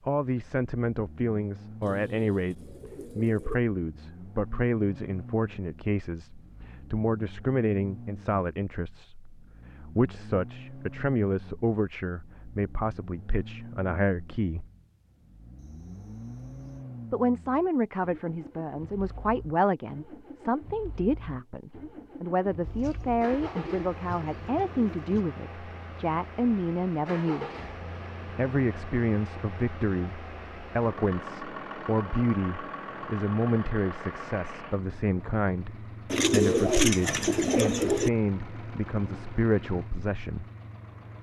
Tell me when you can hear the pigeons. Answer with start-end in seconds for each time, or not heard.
1.8-3.5, 22.6-25.2, 36.1-38.1.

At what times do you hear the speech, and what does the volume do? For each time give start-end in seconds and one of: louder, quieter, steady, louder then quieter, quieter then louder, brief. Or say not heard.
0.1-14.7 steady
17.1-27.5 steady
28.4-40.5 steady.